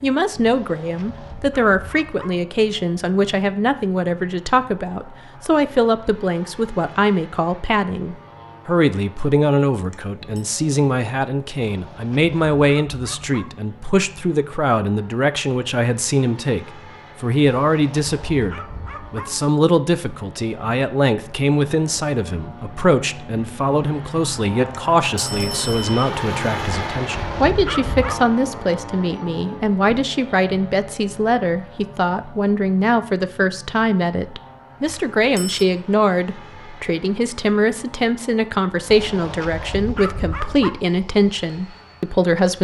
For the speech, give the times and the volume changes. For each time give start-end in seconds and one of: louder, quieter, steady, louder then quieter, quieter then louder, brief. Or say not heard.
0.0-42.5 steady.